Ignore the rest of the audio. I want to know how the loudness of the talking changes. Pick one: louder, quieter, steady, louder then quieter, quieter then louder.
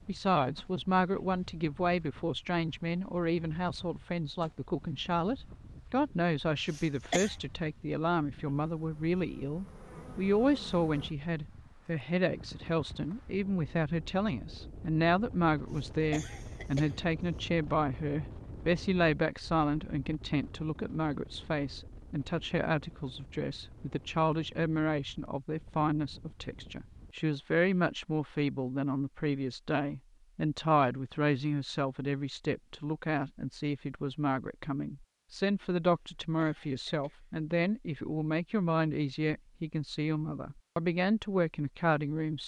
steady.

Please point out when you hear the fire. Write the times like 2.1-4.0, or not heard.
not heard.